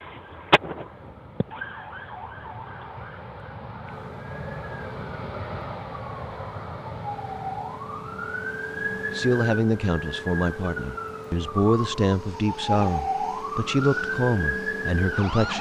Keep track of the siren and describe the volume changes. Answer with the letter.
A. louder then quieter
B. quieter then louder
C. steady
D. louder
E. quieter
B.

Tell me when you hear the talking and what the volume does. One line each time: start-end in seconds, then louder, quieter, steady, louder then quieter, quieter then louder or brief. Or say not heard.
9.1-15.5 steady.